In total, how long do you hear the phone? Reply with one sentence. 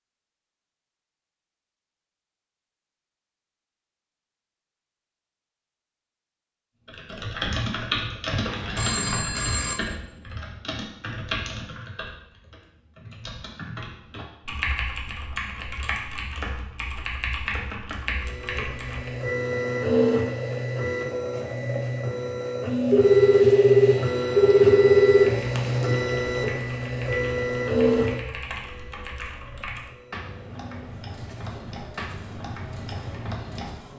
The phone can be heard for 4 seconds in total.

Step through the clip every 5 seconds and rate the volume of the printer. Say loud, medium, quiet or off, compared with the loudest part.
off, off, off, loud, loud, loud, quiet.